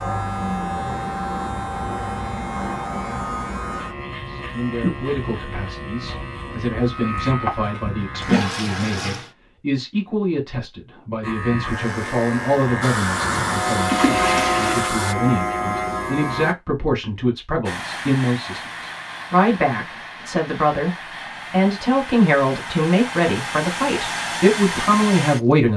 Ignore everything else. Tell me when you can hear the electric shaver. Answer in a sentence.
The electric shaver can be heard from 0.0 to 8.3 s and from 11.2 to 16.6 s.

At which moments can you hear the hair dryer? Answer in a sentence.
The hair dryer can be heard from 12.8 to 15.2 s and from 17.6 to 25.6 s.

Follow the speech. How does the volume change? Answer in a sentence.
The loudness of the speech goes up.